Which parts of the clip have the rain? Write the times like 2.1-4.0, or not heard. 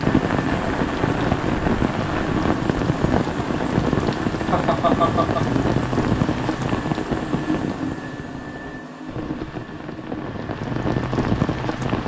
0.0-12.0.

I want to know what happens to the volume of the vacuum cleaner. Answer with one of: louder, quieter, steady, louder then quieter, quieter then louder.
quieter.